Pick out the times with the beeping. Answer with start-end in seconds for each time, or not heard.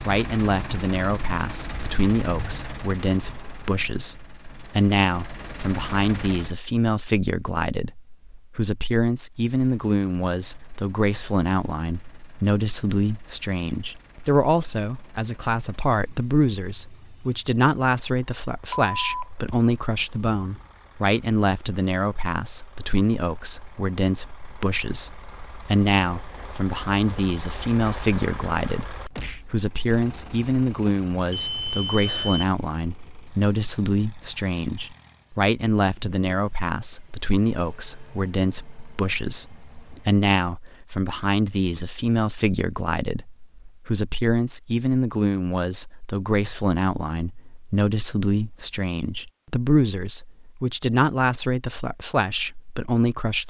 18.7-20.6, 31.2-32.5.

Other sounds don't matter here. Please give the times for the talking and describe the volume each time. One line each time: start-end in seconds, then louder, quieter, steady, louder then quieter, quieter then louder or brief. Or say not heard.
0.0-53.4 steady.